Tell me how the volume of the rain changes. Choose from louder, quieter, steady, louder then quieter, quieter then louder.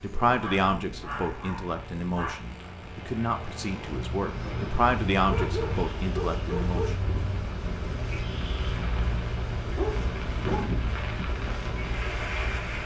louder.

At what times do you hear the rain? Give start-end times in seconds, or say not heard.
0.0-12.8.